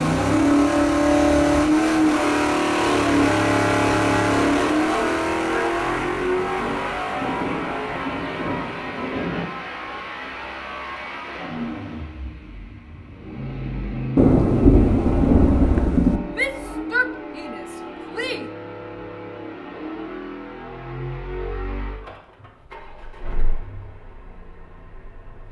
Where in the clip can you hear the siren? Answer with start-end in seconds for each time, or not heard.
not heard.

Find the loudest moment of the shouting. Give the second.
17 s.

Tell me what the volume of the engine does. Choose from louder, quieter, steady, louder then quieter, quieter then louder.
quieter.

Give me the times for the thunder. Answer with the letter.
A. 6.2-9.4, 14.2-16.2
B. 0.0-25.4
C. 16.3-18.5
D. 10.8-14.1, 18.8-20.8
A.